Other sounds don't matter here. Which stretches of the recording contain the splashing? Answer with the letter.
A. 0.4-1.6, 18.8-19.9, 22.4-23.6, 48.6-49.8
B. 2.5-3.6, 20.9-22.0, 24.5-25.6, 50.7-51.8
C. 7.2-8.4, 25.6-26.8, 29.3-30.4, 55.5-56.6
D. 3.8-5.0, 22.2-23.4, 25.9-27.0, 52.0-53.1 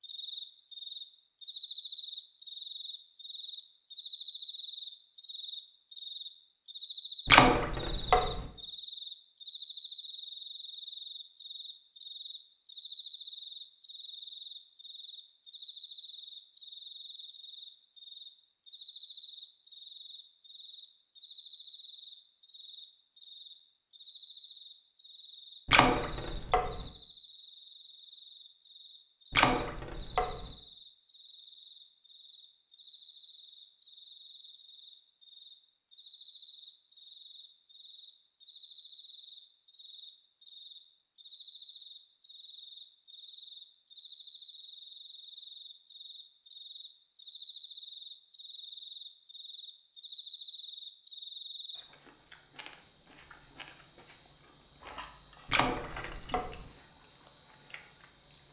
C.